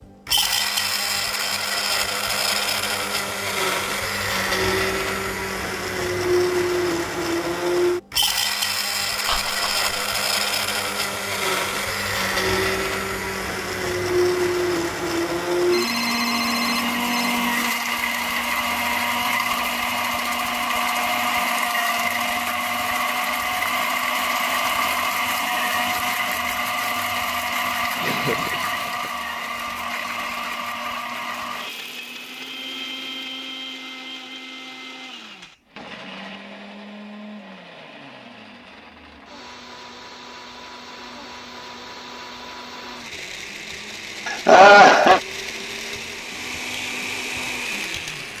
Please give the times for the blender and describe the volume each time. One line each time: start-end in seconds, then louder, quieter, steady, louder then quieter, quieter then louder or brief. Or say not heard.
0.0-48.3 quieter.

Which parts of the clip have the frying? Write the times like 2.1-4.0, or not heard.
not heard.